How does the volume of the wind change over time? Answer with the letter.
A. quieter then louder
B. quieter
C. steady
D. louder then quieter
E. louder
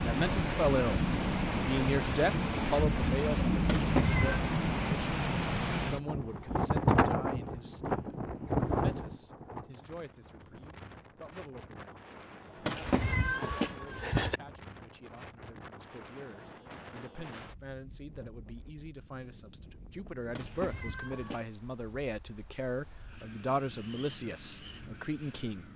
B.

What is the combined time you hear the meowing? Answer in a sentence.
You can hear the meowing for 4 seconds altogether.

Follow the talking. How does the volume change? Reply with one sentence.
The volume of the talking goes down, then up.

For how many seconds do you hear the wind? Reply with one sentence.
You can hear the wind for 26 seconds altogether.